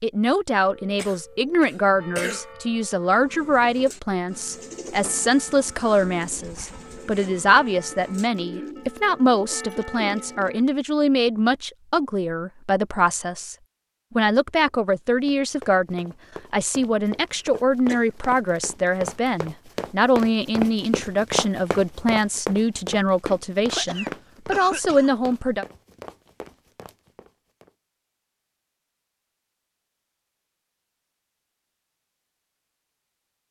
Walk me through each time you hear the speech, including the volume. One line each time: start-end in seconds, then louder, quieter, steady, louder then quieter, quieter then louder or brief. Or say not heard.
0.0-25.6 steady.